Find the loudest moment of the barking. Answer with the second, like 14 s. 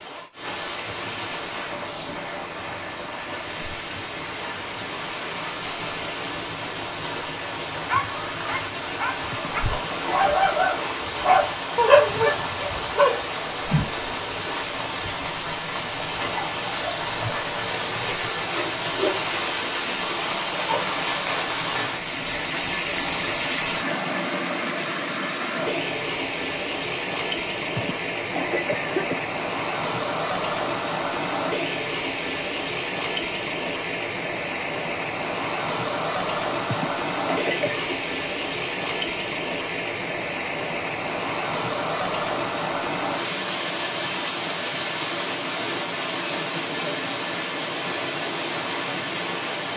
12 s.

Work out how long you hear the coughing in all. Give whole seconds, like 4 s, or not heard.
4 s.